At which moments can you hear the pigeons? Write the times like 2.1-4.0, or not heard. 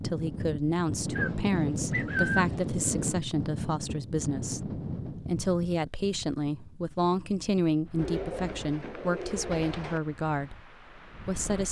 1.1-3.1, 8.0-10.0.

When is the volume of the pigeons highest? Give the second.
2 s.